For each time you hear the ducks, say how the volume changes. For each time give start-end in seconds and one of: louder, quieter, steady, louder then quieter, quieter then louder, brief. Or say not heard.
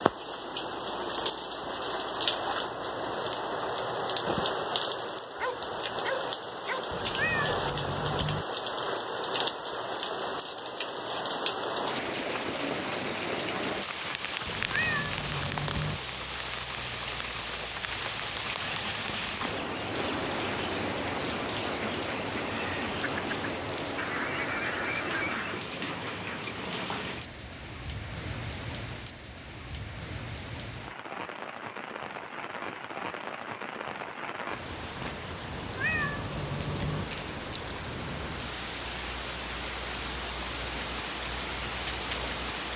18.7-25.6 louder.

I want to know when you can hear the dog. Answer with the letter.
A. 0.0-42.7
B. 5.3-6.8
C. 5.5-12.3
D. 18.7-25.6
B.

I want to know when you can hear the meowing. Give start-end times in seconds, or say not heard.
6.9-8.4, 14.4-16.0, 35.5-37.0.